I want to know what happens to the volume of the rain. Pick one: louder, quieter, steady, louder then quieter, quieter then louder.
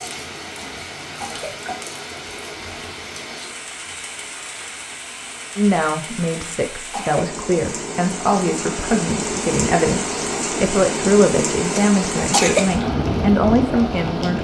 louder.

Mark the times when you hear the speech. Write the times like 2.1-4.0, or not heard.
5.5-14.3.